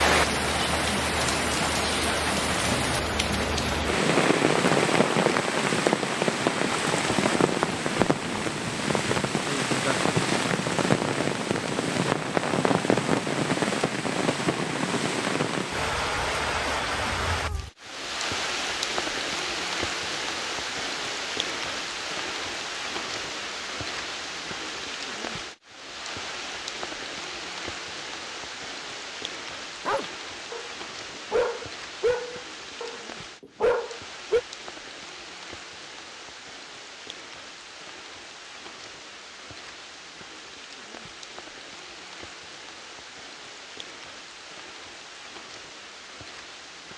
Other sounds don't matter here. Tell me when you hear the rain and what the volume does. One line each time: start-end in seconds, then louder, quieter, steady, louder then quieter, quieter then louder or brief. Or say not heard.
0.0-46.9 quieter.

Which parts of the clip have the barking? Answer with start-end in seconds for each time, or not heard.
29.9-34.4.